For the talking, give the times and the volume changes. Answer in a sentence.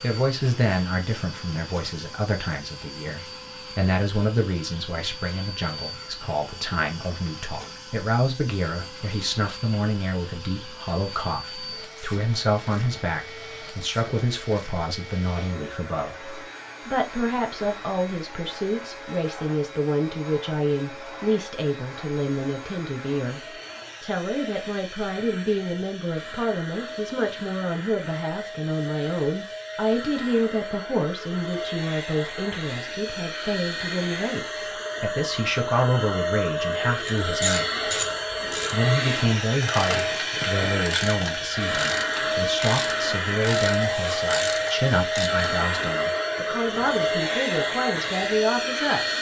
You can hear the talking from 0.0 to 37.8 s, at a steady volume; and from 38.7 to 49.1 s, at a steady volume.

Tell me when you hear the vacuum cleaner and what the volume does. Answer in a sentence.
You can hear the vacuum cleaner from 0.0 to 49.1 s, getting louder.